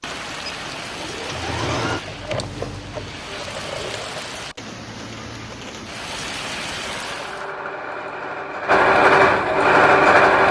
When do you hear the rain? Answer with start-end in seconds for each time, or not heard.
0.0-7.5.